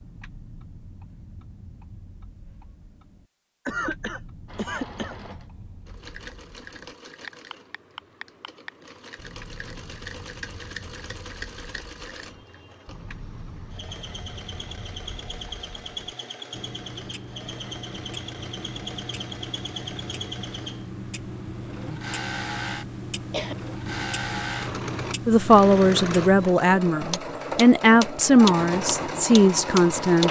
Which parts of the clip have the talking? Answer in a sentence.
The talking can be heard from 25.2 to 30.2 s.